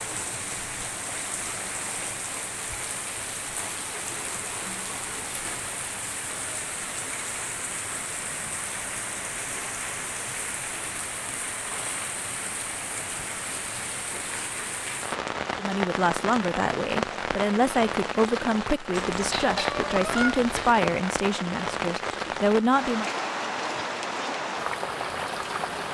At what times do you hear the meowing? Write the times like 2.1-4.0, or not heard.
19.1-20.8.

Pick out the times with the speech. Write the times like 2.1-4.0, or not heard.
15.6-23.1.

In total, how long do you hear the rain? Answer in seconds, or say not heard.
26 s.